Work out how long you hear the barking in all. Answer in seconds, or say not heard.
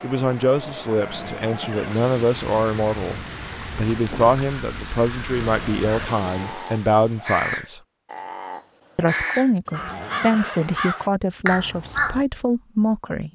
not heard.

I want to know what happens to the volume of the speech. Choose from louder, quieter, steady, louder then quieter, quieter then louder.
steady.